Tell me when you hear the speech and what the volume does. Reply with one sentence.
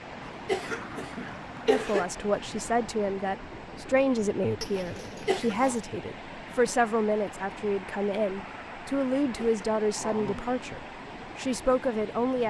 The speech can be heard from 1.6 to 12.4 s, at a steady volume.